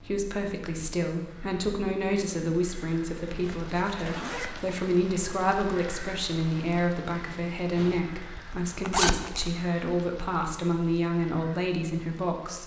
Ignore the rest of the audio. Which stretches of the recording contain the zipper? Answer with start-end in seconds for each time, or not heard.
3.4-4.8, 8.2-9.5.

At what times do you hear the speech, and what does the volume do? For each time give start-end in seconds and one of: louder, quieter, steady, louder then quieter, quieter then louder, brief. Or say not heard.
0.0-12.6 steady.